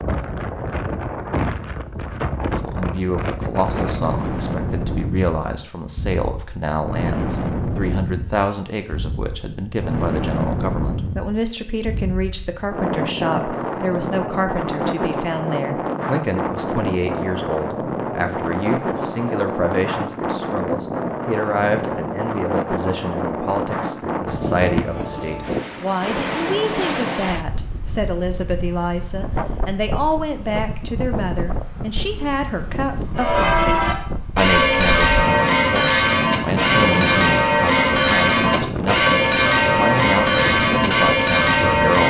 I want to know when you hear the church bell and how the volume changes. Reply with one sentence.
You can hear the church bell from 33.1 to 42.0 s, at a steady volume.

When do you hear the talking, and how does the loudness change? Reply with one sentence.
The talking can be heard from 2.5 to 42.0 s, at a steady volume.